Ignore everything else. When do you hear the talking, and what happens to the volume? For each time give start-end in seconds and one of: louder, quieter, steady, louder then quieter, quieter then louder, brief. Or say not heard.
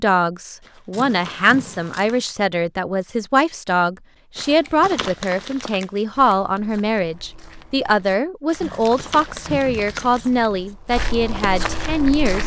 0.0-12.4 steady.